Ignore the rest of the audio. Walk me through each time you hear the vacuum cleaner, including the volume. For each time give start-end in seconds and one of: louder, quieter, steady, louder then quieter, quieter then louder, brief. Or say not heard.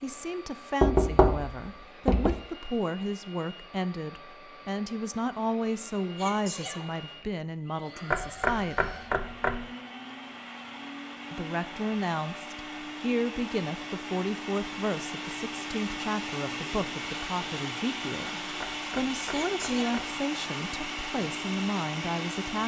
0.0-22.6 louder.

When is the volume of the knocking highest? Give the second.
1 s.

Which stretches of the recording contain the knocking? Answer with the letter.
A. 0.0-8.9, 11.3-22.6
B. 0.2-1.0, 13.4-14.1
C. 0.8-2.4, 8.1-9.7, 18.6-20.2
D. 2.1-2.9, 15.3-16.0
C.